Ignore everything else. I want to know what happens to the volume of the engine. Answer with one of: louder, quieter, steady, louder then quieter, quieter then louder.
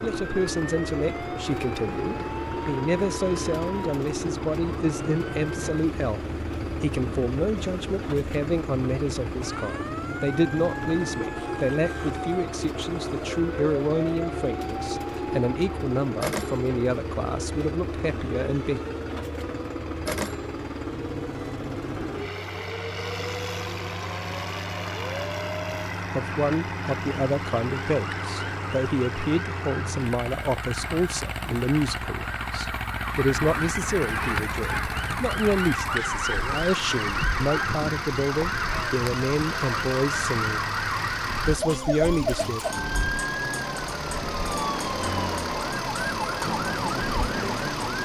steady.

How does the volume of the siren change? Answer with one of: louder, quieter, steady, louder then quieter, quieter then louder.
louder.